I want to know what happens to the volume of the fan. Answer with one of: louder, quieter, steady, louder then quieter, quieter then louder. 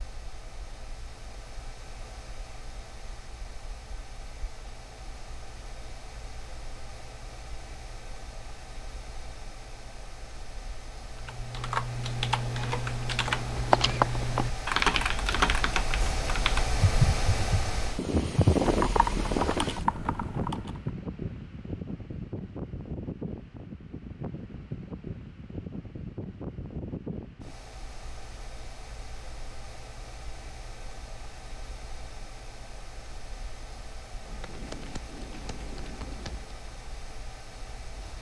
louder then quieter.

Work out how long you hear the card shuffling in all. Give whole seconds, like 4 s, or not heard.
2 s.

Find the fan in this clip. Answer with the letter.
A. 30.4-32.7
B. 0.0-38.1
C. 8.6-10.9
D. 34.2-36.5
B.